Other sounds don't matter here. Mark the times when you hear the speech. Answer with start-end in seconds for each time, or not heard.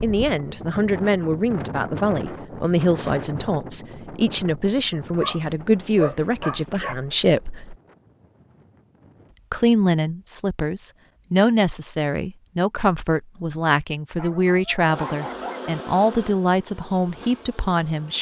0.0-7.8, 9.5-18.1.